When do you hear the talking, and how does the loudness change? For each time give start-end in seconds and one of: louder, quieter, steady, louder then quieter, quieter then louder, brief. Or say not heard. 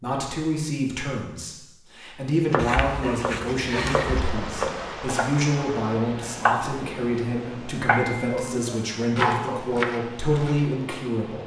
0.0-11.4 steady.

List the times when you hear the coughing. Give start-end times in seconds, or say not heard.
not heard.